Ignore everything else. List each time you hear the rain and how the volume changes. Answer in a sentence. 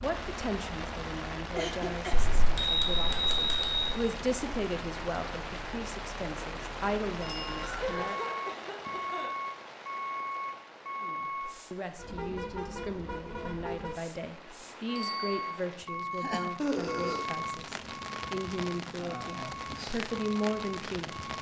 The rain can be heard from 0.0 to 21.3 s, getting quieter then louder.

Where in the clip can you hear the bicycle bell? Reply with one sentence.
The bicycle bell can be heard from 2.1 to 3.9 s, from 7.2 to 7.7 s and from 14.9 to 15.4 s.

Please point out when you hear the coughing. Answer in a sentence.
The coughing can be heard from 1.6 to 2.4 s, from 7.6 to 9.3 s and from 16.6 to 17.2 s.